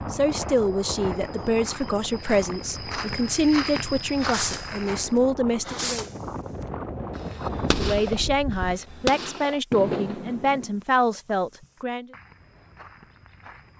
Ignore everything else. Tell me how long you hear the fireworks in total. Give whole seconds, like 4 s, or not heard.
5 s.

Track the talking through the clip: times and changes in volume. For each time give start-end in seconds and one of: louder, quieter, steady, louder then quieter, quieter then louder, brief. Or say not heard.
0.1-6.0 steady
7.8-12.1 steady.